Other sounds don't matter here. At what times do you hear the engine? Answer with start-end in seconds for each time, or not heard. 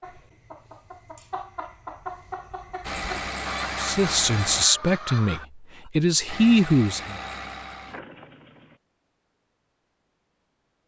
2.8-4.7, 6.2-8.8.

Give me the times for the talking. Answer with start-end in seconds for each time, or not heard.
3.8-7.2.